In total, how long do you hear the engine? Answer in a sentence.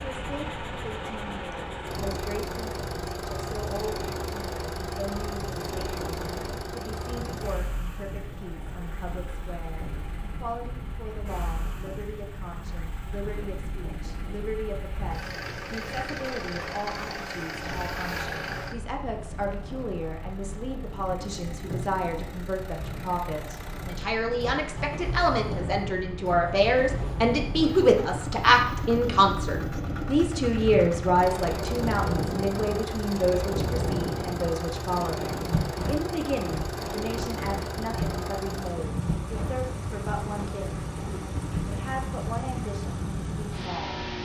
You can hear the engine for 44 seconds altogether.